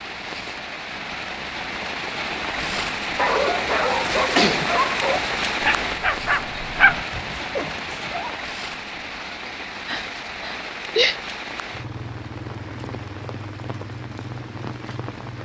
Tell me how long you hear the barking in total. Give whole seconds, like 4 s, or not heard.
6 s.